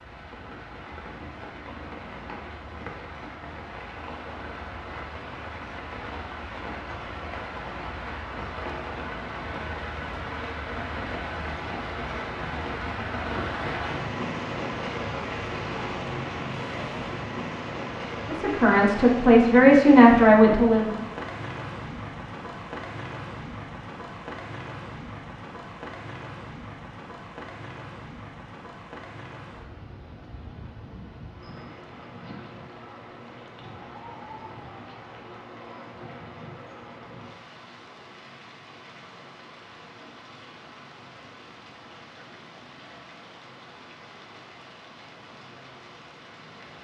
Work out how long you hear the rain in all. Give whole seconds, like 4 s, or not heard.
47 s.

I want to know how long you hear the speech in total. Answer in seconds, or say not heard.
3 s.